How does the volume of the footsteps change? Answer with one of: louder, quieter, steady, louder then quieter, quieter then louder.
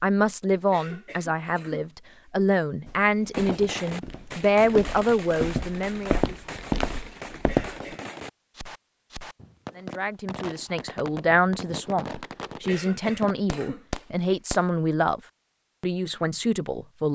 louder.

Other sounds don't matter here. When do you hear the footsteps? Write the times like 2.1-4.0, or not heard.
2.9-8.0.